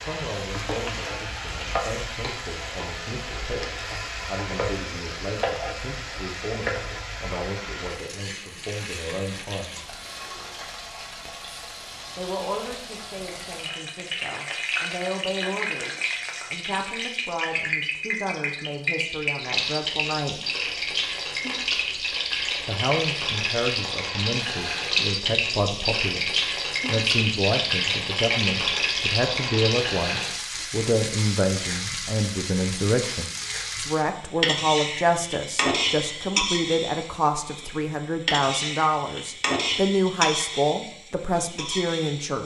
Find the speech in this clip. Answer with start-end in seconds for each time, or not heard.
0.0-9.9, 12.2-20.4, 22.6-42.4.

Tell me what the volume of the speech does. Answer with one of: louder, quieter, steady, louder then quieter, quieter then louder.
louder.